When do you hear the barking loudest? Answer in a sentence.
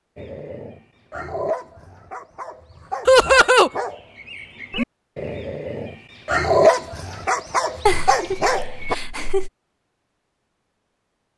The loudest moment of the barking is at 7 seconds.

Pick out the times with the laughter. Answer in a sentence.
You can hear the laughter from 3.0 to 3.7 s and from 7.8 to 9.5 s.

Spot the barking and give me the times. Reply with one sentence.
The barking can be heard from 0.1 to 8.9 s.